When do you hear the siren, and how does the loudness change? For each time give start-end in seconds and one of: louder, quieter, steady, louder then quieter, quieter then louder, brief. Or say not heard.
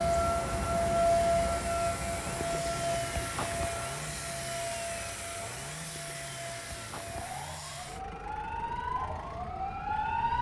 0.0-10.3 quieter then louder.